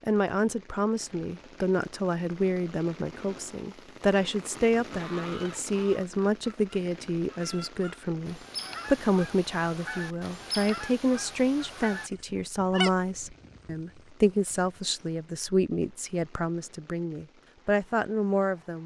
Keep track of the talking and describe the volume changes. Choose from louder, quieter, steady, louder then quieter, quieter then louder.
steady.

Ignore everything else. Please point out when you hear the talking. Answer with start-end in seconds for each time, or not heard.
0.0-18.8.